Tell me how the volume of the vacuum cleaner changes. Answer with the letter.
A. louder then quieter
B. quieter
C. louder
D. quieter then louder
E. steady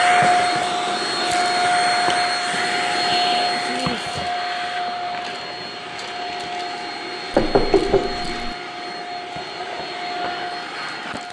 B.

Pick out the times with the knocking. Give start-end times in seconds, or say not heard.
7.3-8.6.